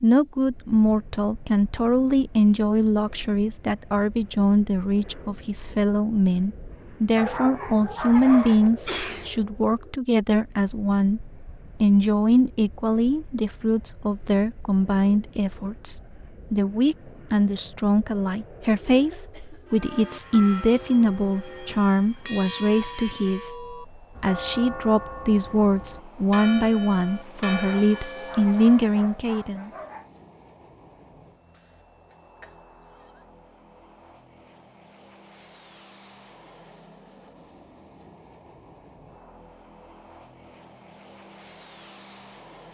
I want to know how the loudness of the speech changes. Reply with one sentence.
The volume of the speech stays about the same.